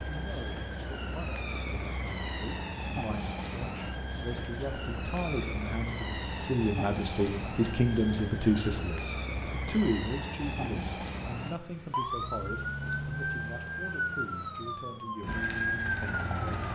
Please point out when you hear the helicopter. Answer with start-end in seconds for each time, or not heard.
15.2-16.7.